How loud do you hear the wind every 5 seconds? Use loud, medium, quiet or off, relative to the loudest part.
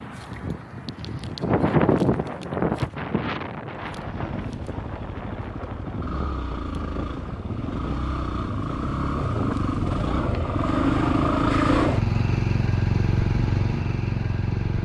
loud, medium, off.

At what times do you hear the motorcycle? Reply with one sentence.
You can hear the motorcycle from 3.7 to 14.7 s.